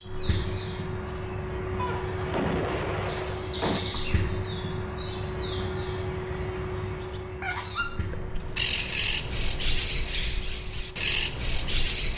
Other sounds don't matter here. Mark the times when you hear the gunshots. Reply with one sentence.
The gunshots can be heard from 1.8 to 3.8 s.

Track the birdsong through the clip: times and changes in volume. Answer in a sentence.
You can hear the birdsong from 0.0 to 12.1 s, getting louder.